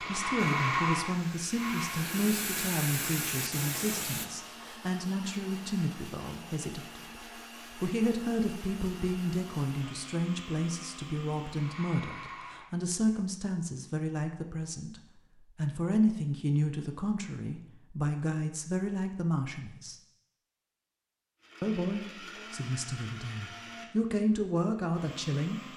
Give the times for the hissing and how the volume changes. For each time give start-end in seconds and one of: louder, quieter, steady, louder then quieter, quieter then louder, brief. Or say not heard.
0.0-4.2 louder.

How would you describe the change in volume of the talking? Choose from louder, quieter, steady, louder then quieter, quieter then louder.
steady.